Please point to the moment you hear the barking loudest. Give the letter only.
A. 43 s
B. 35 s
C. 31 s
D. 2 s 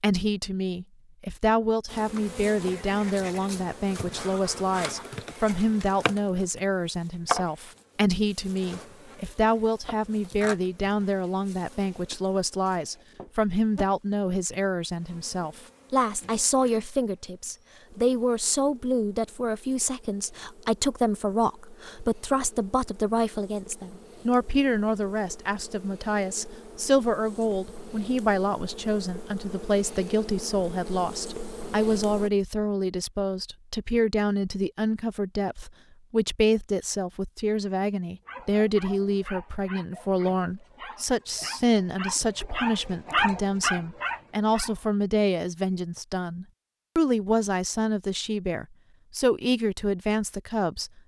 A.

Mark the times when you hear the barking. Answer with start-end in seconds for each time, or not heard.
38.2-44.9.